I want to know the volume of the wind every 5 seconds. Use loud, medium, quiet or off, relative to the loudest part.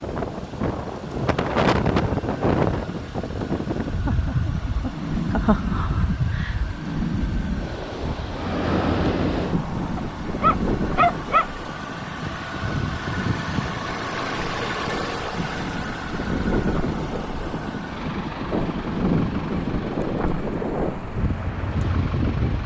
loud, loud, medium, loud, loud.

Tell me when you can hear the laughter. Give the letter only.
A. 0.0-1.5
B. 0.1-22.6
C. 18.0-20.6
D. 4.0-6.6
D.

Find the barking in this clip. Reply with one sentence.
The barking can be heard from 9.9 to 11.4 s.